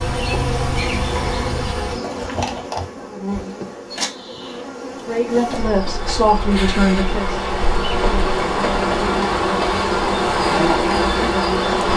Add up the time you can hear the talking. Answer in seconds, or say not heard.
2 s.